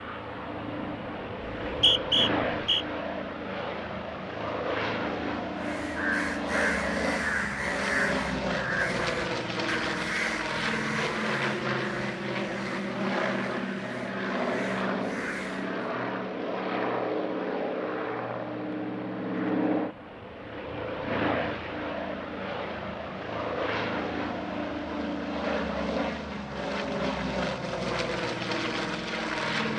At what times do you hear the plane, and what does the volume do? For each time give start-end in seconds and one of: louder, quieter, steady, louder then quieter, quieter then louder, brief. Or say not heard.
0.0-29.7 steady.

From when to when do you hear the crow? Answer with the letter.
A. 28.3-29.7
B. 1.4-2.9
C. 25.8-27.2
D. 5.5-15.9
D.